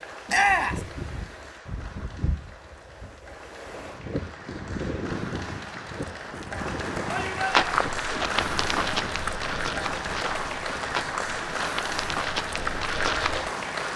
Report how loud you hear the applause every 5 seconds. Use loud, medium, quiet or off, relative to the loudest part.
quiet, loud, loud.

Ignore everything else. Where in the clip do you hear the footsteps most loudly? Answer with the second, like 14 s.
8 s.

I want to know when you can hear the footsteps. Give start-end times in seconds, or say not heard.
7.5-13.5.